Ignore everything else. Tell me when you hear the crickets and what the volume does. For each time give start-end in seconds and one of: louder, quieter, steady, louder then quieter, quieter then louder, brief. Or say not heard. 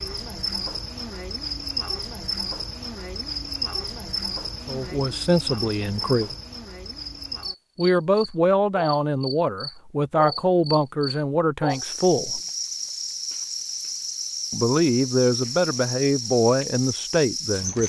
0.0-17.8 steady.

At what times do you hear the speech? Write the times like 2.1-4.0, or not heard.
4.7-6.3, 7.8-12.4, 14.5-17.8.